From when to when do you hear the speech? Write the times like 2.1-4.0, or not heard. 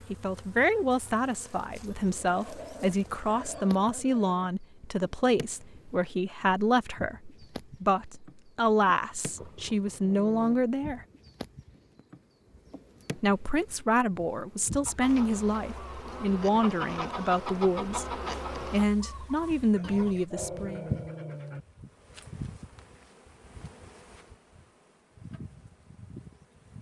0.1-11.0, 13.2-20.9.